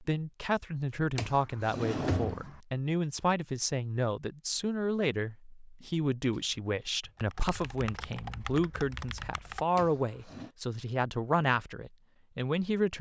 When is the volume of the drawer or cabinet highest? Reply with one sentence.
The loudest moment of the drawer or cabinet is at 2 seconds.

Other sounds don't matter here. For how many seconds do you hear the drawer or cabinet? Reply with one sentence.
The drawer or cabinet can be heard for 2 seconds in total.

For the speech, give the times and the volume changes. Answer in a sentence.
You can hear the speech from 0.0 to 12.9 s, at a steady volume.